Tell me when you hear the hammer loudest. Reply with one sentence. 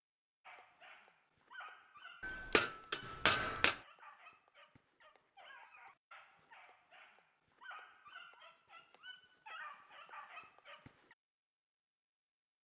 The volume of the hammer peaks at 3 seconds.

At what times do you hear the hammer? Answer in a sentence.
You can hear the hammer from 2.2 to 3.8 s.